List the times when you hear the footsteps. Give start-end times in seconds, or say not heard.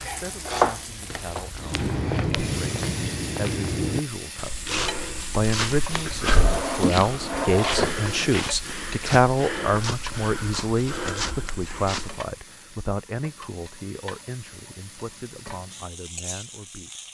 1.6-12.2.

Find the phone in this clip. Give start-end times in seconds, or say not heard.
not heard.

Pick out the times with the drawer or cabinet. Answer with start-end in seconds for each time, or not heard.
6.3-8.3.